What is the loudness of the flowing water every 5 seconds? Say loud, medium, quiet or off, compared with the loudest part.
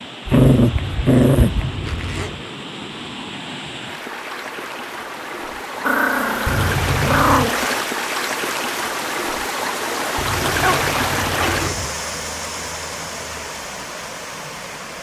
medium, loud, loud.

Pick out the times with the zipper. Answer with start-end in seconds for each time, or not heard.
0.7-2.4, 6.5-7.5, 10.2-11.8.